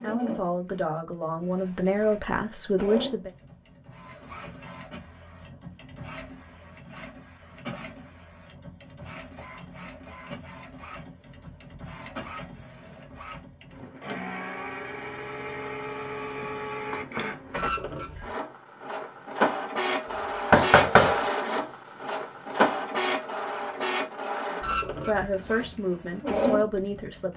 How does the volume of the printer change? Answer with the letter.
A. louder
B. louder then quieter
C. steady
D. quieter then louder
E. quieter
A.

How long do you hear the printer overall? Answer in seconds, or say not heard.
27 s.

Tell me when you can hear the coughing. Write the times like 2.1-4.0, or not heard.
not heard.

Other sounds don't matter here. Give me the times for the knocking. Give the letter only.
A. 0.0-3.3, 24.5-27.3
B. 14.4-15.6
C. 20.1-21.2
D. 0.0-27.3
C.